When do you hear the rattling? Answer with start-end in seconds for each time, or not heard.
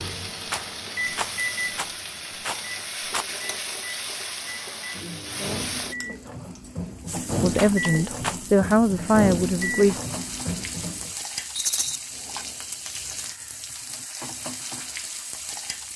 0.5-3.2, 7.5-8.3, 11.6-12.0.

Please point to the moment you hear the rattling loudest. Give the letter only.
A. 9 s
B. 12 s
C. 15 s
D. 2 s
B.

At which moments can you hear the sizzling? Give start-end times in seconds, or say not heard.
0.0-15.9.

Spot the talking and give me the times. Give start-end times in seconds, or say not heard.
7.4-9.9.